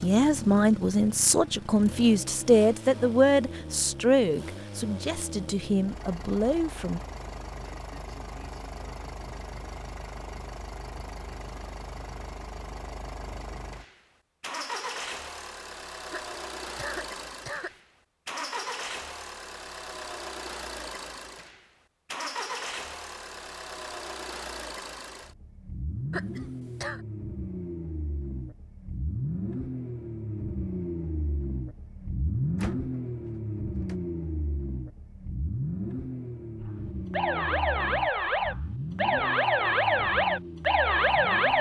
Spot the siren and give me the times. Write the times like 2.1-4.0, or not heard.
36.6-41.5.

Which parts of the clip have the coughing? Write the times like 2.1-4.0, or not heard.
16.1-17.8, 26.1-27.0.